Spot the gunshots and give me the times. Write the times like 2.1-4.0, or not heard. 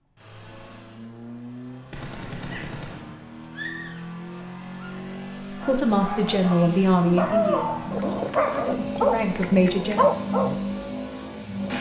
1.9-3.2.